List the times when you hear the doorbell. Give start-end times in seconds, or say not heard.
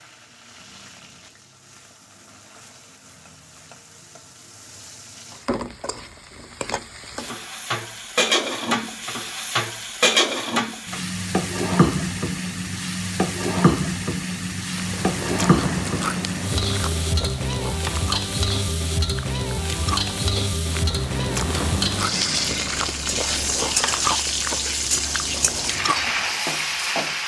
not heard.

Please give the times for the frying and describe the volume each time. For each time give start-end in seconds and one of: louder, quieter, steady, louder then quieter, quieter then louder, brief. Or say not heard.
0.0-27.2 louder.